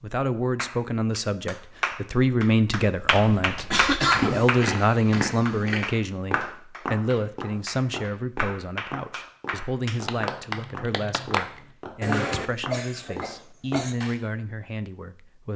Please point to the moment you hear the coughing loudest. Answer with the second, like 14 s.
4 s.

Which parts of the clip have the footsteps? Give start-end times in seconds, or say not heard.
2.9-14.2.